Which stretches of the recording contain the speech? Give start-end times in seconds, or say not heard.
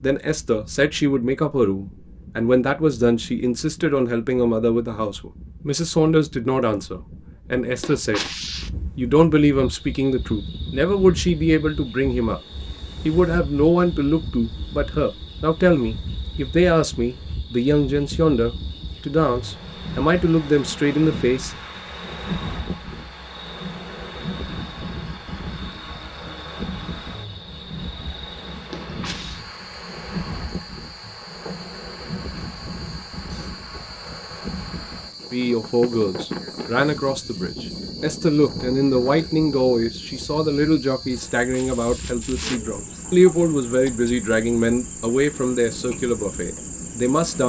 0.0-8.2, 8.9-12.4, 13.1-21.6, 35.3-47.4.